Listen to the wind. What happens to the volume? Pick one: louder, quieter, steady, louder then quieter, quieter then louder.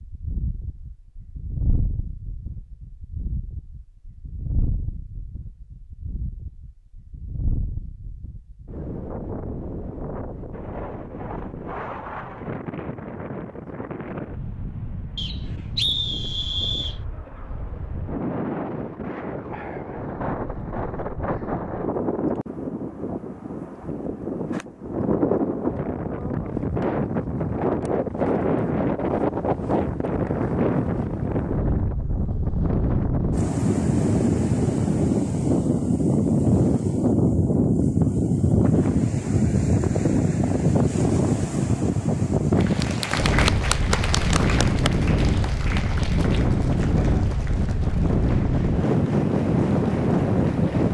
louder.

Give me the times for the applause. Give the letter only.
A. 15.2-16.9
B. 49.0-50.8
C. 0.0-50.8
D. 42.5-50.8
D.